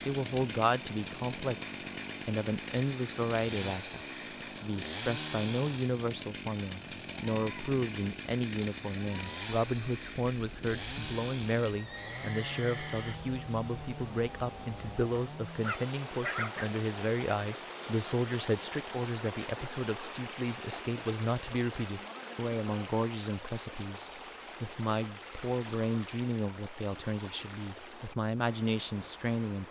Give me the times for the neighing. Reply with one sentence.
You can hear the neighing from 11.7 to 13.2 s.